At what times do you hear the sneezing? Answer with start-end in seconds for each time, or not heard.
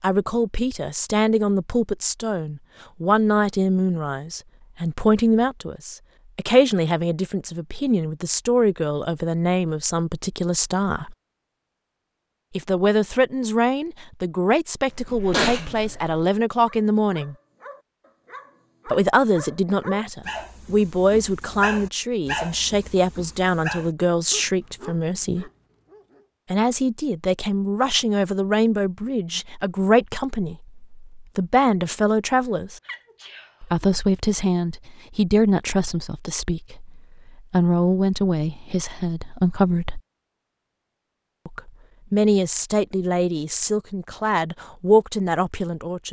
14.8-16.2, 32.9-33.9.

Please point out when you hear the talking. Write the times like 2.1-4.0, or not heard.
0.0-11.2, 12.6-17.4, 18.9-25.5, 26.5-32.8, 33.6-40.0, 41.5-46.0.